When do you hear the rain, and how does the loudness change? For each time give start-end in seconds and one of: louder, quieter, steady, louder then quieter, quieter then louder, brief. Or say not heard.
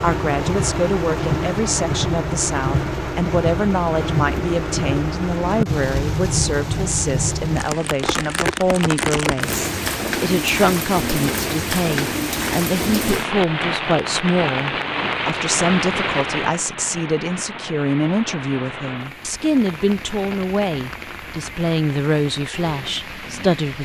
0.0-23.8 quieter.